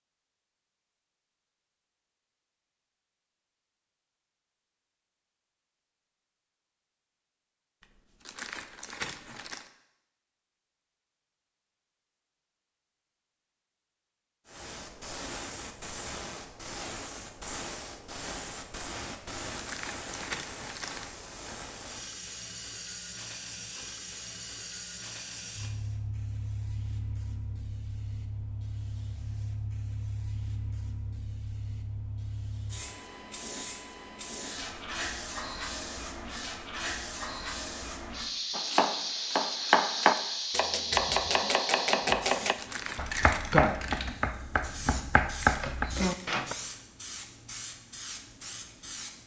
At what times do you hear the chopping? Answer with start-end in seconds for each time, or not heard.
38.5-46.5.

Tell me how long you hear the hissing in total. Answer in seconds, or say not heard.
35 s.